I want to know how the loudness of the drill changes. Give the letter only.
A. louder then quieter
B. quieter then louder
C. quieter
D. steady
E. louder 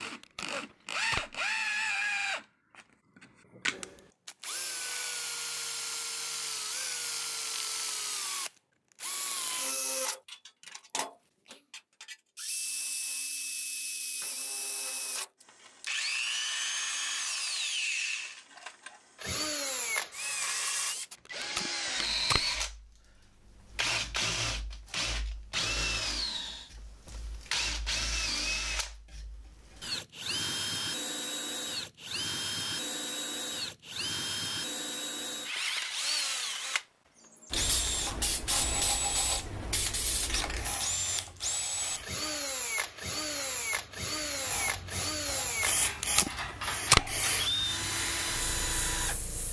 D.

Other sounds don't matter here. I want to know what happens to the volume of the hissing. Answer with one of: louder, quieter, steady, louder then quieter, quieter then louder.
quieter then louder.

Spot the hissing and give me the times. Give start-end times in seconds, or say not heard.
37.5-49.4.